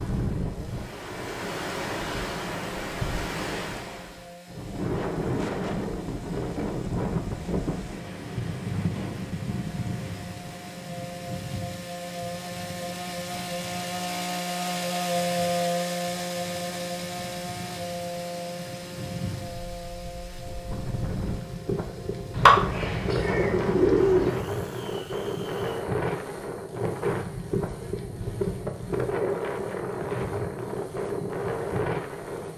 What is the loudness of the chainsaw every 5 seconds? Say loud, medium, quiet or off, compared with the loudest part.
quiet, quiet, loud, loud, quiet, quiet, quiet.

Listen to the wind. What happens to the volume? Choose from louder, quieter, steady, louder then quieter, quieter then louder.
quieter then louder.